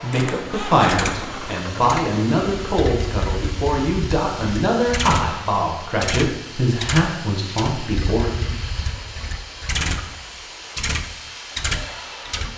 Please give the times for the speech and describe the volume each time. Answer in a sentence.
The speech can be heard from 0.0 to 8.3 s, at a steady volume.